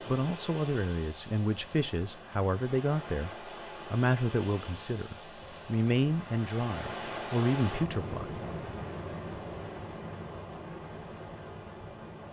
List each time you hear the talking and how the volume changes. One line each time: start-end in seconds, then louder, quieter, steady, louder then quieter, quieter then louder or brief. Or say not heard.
0.1-8.3 steady.